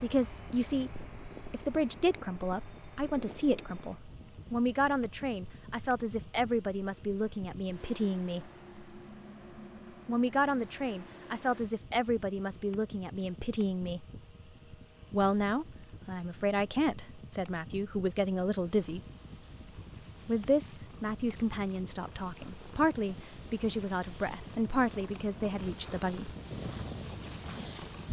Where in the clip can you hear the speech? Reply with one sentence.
The speech can be heard from 0.0 to 8.5 s, from 10.1 to 14.1 s, from 15.1 to 19.0 s and from 20.2 to 26.3 s.